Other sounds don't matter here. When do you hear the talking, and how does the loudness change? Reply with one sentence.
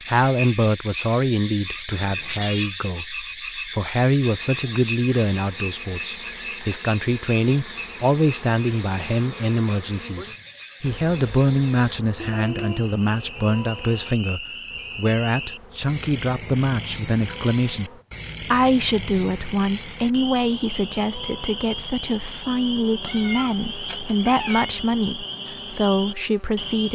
The talking can be heard from 0.1 to 26.9 s, at a steady volume.